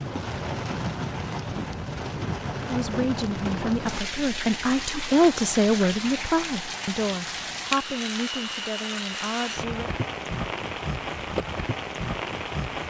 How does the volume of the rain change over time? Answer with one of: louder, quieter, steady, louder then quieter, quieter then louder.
steady.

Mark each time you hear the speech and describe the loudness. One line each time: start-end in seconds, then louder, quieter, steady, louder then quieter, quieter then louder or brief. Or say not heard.
2.6-9.9 louder then quieter.